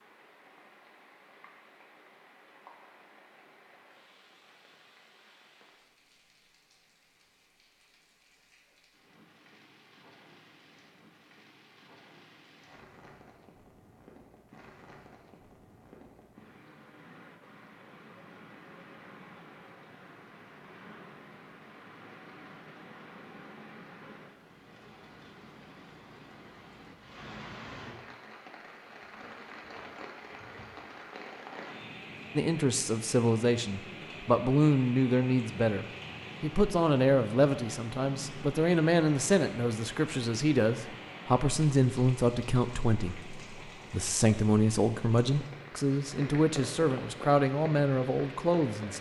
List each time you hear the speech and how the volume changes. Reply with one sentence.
You can hear the speech from 32.4 to 48.9 s, at a steady volume.